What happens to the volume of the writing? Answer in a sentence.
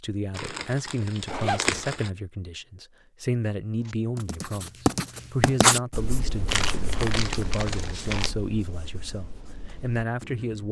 The loudness of the writing goes down.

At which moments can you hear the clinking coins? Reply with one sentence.
You can't hear the clinking coins here.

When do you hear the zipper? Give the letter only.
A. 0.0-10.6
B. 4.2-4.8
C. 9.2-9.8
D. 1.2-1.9
D.